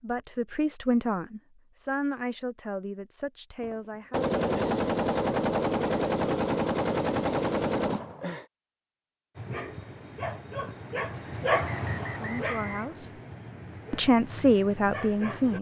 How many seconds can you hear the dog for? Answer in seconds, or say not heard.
6 s.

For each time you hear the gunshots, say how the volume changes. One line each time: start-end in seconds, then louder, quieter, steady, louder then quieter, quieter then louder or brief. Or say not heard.
3.6-8.4 steady.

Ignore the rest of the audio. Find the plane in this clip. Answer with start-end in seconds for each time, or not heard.
not heard.